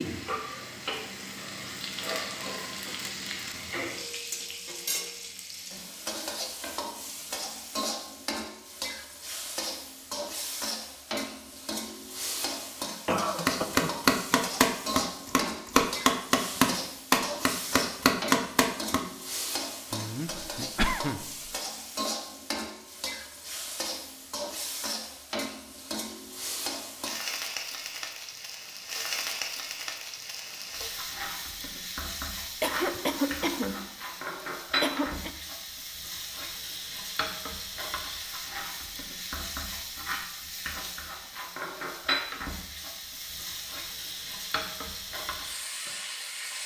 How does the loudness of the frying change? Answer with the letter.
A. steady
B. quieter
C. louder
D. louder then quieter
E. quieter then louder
A.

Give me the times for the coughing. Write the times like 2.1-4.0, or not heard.
13.1-13.9, 19.9-21.5, 32.6-34.2, 34.8-35.3.